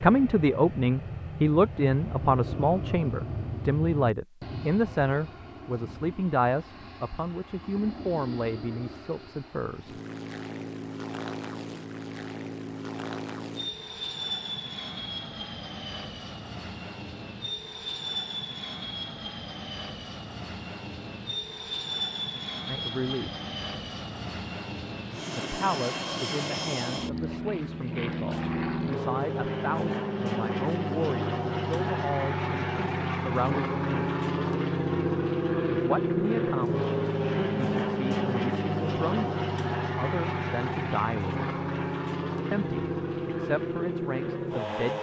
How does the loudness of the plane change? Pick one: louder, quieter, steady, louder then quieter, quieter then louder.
louder.